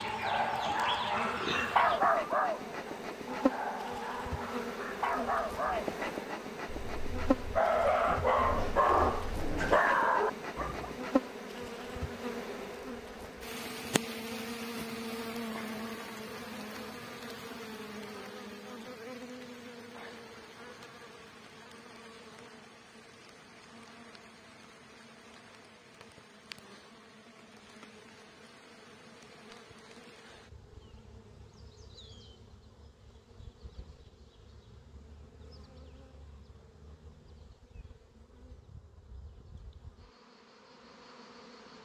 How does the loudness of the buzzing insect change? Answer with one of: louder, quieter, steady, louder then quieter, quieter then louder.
quieter.